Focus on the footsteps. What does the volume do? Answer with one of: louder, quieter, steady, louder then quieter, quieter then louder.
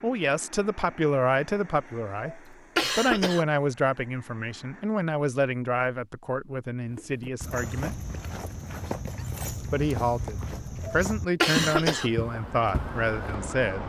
louder.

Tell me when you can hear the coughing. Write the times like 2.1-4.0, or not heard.
2.2-3.5, 10.8-12.1.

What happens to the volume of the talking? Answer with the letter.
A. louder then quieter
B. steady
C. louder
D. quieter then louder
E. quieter
B.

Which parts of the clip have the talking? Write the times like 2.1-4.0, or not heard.
0.0-8.0, 9.5-13.8.